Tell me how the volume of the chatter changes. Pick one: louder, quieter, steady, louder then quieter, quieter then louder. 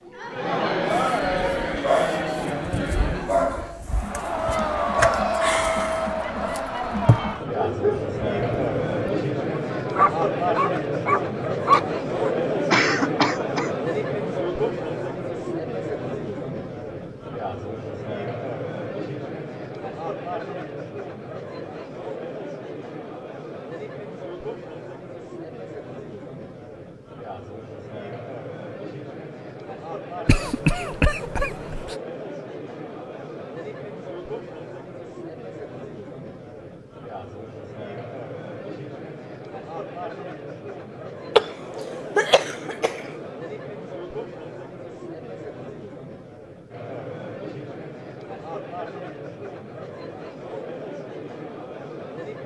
quieter.